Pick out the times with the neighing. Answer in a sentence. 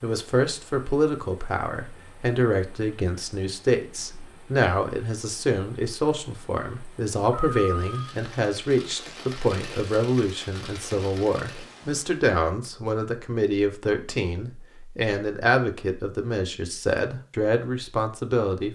You can hear the neighing from 7.3 to 8.2 s.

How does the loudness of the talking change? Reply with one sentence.
The loudness of the talking stays about the same.